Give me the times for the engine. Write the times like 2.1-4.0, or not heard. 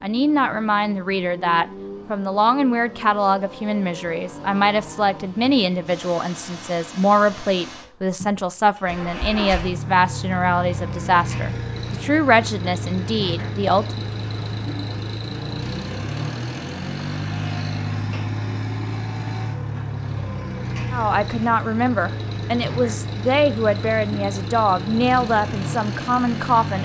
0.0-26.7.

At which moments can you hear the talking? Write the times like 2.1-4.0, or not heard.
0.0-14.0, 20.9-26.7.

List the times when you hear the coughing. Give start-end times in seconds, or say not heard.
not heard.